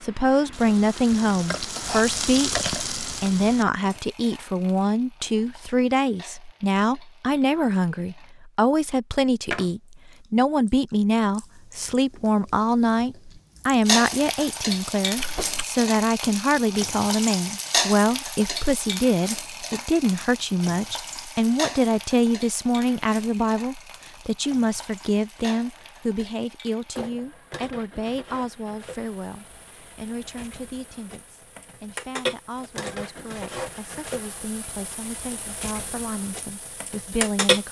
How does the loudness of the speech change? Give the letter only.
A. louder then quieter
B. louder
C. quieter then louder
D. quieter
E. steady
D.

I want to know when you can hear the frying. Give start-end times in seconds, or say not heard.
0.0-8.3, 13.8-37.6.